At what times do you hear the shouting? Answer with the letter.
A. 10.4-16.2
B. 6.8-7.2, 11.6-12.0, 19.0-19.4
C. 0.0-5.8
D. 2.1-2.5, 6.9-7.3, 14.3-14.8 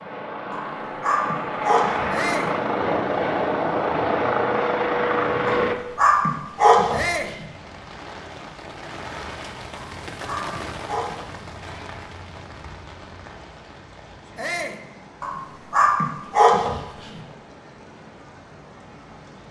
D.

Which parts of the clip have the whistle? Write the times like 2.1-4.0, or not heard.
not heard.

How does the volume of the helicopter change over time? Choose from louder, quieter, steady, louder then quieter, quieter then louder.
louder.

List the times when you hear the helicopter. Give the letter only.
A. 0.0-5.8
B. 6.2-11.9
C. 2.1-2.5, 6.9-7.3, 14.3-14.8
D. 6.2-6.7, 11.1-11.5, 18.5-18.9
A.